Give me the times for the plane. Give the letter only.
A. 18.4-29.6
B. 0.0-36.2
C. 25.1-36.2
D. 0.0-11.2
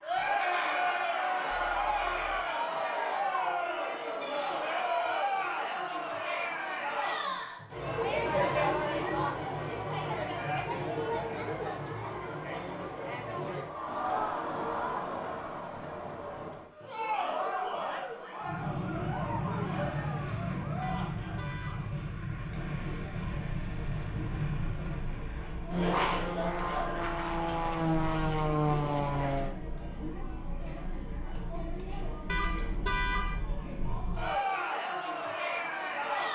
A.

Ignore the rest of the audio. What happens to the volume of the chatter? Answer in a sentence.
The loudness of the chatter goes down, then up.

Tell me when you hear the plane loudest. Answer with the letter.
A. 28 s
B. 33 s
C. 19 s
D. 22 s
A.